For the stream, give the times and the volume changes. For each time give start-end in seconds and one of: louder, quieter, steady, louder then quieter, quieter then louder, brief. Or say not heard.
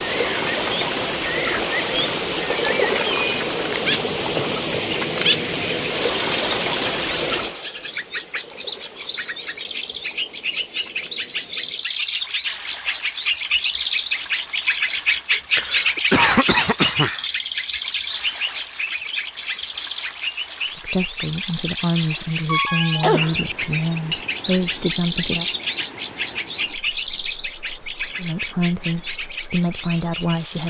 0.0-30.6 quieter.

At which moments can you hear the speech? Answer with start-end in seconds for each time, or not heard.
20.6-25.4, 28.1-30.6.